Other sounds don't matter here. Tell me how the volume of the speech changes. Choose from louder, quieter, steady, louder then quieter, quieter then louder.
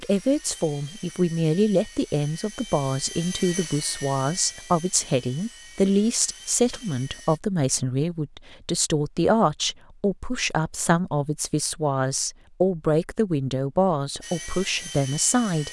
steady.